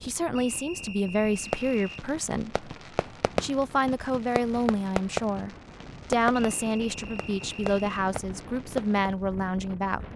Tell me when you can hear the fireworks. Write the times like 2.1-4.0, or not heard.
1.2-9.2.